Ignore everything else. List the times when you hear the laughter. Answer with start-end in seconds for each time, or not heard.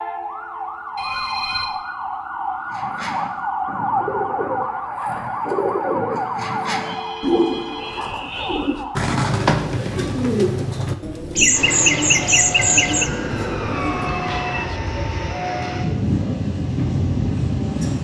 11.3-13.1.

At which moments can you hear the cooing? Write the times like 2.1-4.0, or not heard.
2.7-14.2.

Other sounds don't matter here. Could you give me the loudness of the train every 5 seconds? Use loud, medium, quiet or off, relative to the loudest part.
off, off, medium, loud.